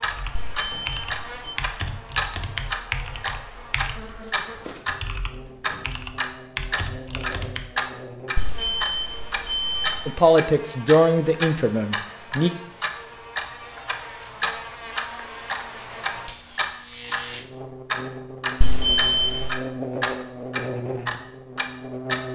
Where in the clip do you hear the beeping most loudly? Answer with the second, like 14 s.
19 s.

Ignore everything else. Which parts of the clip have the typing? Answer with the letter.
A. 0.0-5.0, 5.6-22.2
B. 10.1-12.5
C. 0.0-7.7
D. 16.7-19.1
C.